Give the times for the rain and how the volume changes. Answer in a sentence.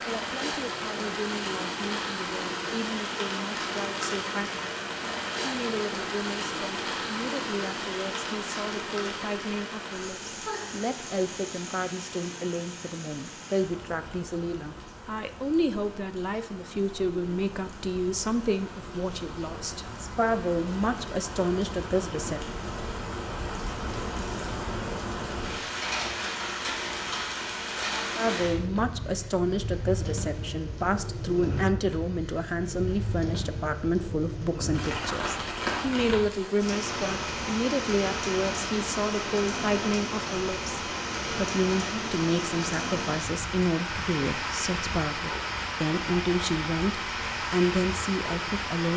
You can hear the rain from 0.0 to 48.9 s, getting quieter then louder.